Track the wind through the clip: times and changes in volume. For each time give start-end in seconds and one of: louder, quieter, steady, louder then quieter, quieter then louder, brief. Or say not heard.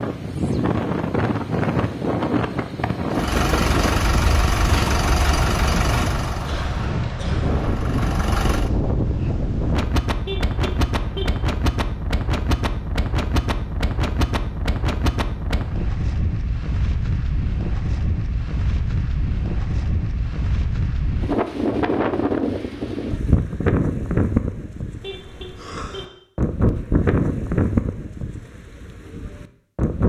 0.0-30.0 steady.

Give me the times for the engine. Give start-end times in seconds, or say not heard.
3.1-8.7.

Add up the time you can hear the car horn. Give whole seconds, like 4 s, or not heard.
2 s.